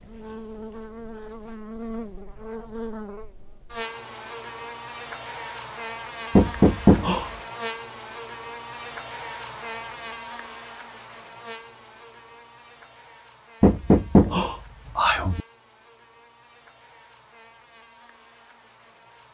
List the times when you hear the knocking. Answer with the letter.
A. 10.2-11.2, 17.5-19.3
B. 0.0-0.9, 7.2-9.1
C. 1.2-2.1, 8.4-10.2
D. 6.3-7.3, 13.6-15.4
D.